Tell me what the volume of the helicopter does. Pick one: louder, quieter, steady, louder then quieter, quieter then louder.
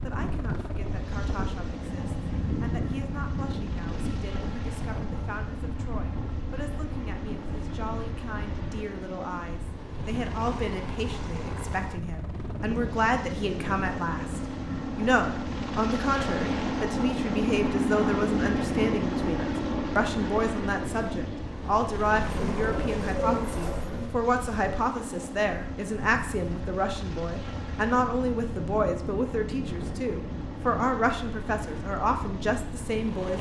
louder then quieter.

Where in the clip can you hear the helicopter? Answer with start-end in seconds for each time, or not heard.
0.0-33.3.